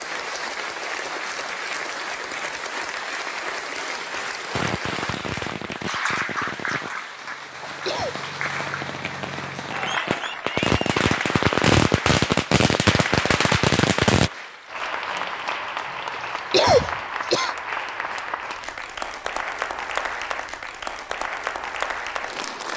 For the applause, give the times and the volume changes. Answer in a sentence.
You can hear the applause from 0.0 to 22.7 s, at a steady volume.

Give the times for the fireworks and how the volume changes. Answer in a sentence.
You can hear the fireworks from 4.5 to 14.3 s, getting quieter then louder.